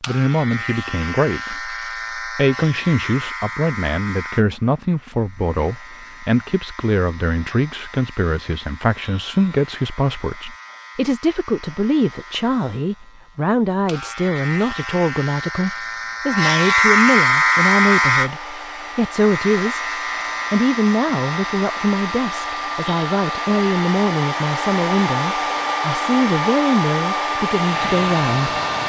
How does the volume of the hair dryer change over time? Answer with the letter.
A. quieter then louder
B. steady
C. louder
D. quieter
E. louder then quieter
C.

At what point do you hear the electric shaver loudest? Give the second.
17 s.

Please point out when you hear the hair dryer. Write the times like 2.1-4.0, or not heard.
17.3-28.8.